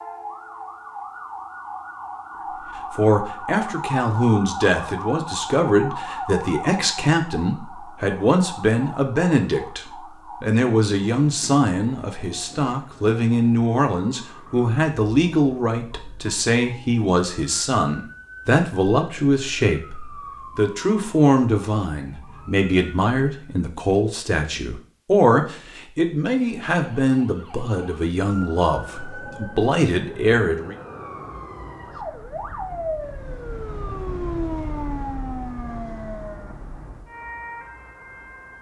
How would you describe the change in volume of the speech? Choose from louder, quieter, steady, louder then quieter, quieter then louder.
steady.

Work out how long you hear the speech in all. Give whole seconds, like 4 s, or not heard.
27 s.